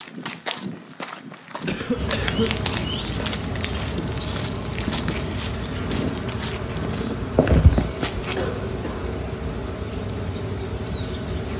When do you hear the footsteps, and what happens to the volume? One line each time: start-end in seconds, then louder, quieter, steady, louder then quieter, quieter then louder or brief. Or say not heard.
0.0-7.2 steady.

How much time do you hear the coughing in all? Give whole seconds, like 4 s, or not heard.
2 s.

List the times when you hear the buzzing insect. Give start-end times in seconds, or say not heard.
1.9-11.5.